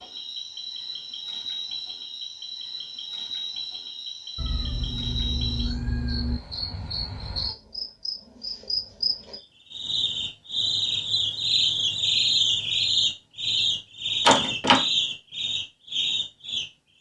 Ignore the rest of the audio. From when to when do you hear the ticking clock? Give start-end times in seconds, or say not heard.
not heard.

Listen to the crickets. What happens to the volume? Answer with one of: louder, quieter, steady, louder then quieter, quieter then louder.
louder.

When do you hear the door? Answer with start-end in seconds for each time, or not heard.
14.2-14.8.